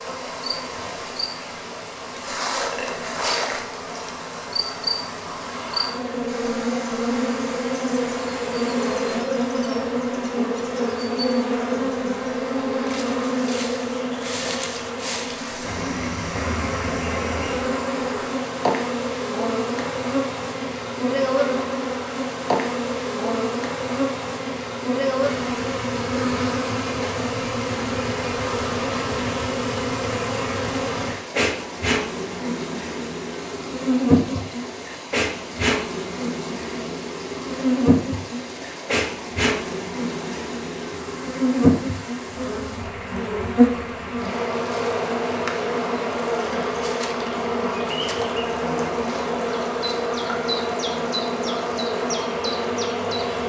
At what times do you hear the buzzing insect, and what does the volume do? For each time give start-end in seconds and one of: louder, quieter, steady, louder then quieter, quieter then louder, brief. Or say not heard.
0.0-53.4 steady.